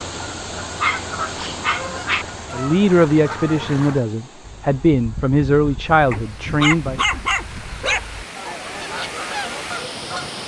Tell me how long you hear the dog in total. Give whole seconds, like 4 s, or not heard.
3 s.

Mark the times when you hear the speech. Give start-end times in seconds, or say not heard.
2.5-7.0.